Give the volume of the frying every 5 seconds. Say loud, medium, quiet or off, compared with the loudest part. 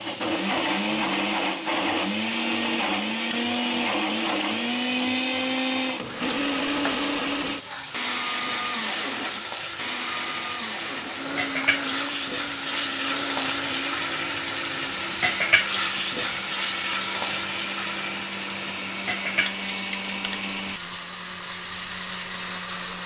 medium, medium, loud, loud, medium.